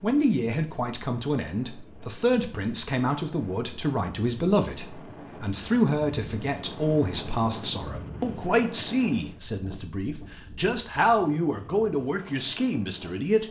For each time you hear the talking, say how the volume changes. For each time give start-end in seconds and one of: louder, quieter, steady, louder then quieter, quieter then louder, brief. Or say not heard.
0.0-13.4 steady.